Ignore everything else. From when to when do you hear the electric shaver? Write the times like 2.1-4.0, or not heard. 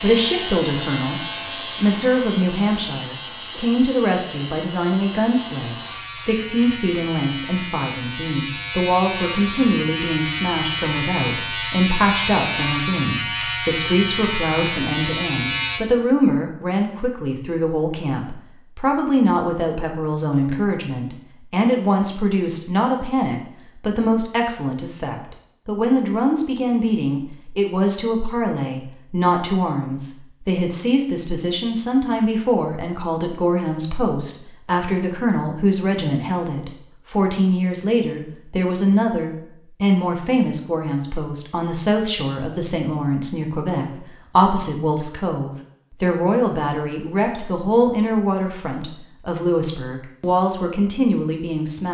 0.0-15.8.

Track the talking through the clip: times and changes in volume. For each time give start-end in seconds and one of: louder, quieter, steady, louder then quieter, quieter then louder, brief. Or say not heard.
0.0-51.8 steady.